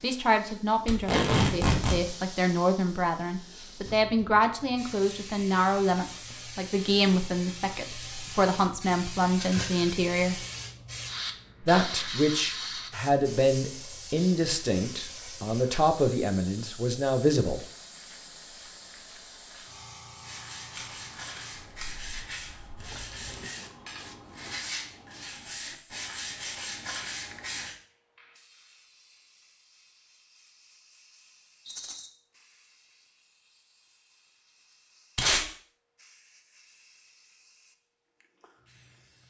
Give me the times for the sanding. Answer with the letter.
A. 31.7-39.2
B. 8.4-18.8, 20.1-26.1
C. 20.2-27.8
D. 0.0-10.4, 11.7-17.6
C.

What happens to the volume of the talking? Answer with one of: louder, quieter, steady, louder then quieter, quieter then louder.
steady.